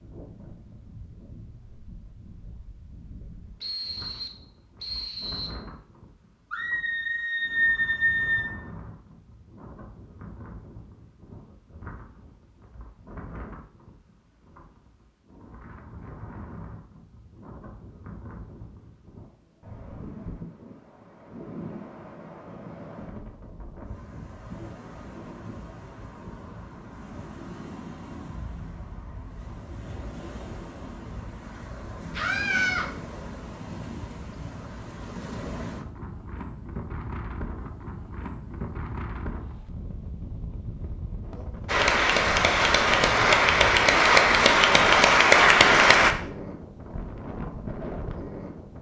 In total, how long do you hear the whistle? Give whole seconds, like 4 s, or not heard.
2 s.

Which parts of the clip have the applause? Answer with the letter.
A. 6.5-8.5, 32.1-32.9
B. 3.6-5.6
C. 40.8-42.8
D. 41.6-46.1
D.